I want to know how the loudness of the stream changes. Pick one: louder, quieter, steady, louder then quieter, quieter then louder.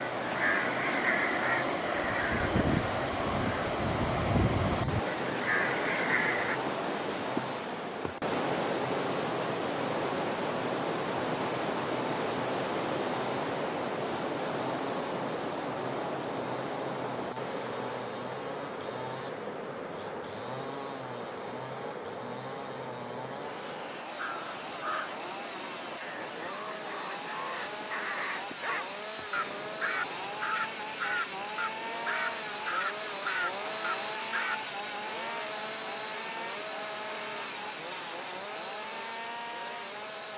quieter.